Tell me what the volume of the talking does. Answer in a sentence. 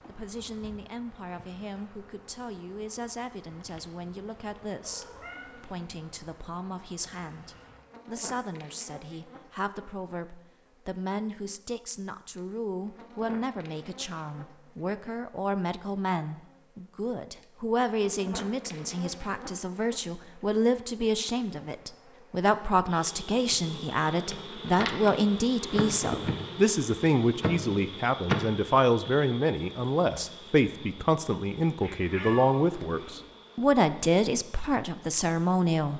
The volume of the talking goes up.